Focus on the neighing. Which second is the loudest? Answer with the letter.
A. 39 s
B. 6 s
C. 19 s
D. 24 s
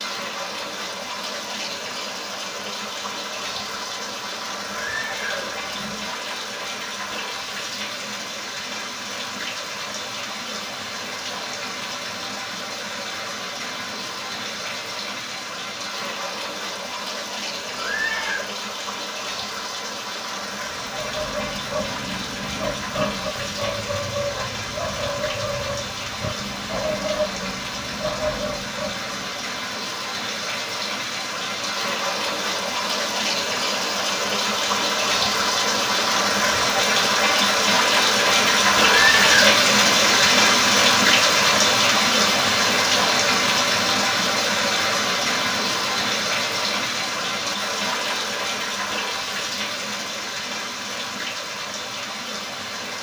A.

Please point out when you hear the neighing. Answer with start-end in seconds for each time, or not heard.
4.8-6.0, 17.8-18.4, 38.8-39.5.